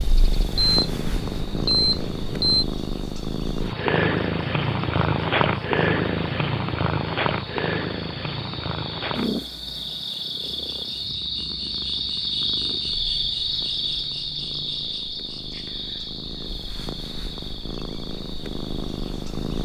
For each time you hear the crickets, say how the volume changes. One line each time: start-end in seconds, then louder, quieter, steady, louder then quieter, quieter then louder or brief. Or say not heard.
0.0-19.6 louder then quieter.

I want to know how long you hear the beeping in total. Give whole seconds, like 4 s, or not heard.
2 s.